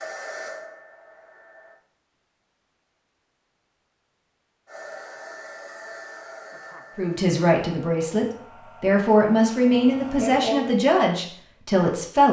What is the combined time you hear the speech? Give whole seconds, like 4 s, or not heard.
5 s.